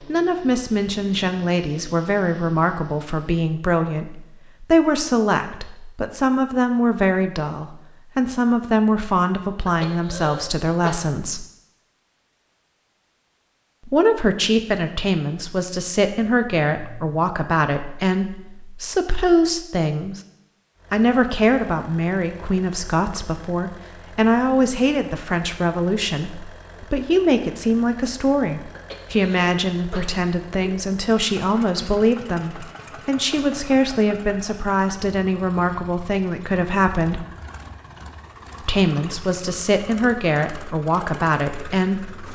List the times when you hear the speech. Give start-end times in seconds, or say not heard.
0.1-11.4, 13.8-20.2, 20.9-37.2, 38.6-42.3.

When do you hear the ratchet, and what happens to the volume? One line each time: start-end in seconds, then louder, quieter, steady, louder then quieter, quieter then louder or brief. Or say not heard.
not heard.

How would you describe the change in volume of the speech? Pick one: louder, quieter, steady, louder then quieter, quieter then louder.
steady.